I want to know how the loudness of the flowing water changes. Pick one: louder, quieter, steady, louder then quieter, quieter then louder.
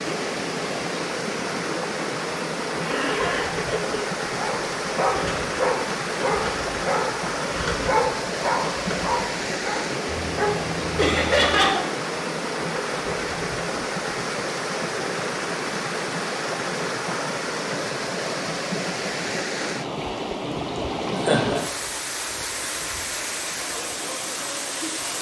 steady.